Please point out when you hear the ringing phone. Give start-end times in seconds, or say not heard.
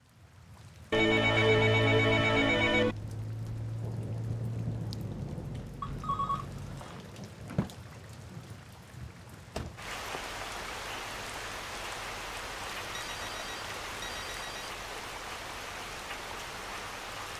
0.9-3.0, 5.8-7.0, 12.9-14.7.